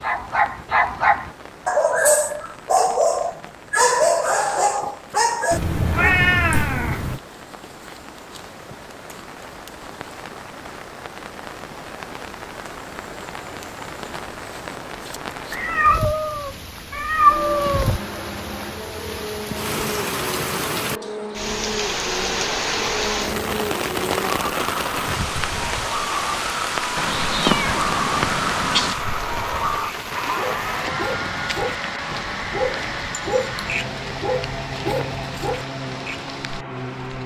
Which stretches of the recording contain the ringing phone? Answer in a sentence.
You can't hear the ringing phone here.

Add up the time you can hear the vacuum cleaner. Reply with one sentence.
The vacuum cleaner can be heard for 20 seconds in total.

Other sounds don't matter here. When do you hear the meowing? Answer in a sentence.
You can hear the meowing from 5.5 to 7.2 s, from 15.5 to 17.9 s and from 26.9 to 28.9 s.